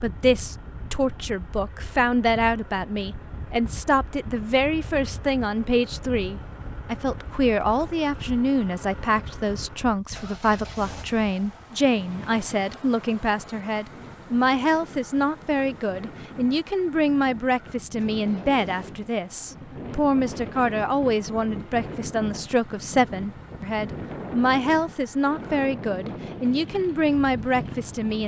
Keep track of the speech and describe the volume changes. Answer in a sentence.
The volume of the speech stays about the same.